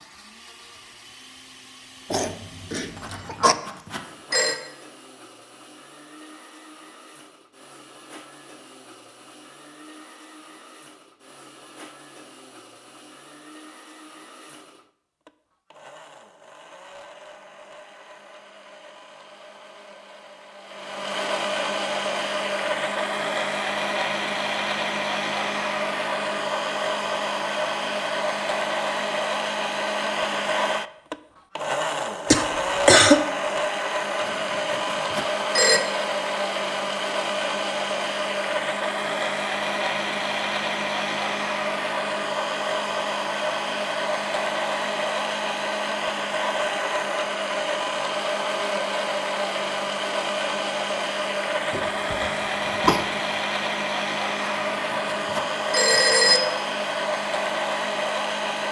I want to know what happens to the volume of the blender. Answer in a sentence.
The volume of the blender goes up.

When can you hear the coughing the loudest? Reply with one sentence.
The volume of the coughing peaks at 33 seconds.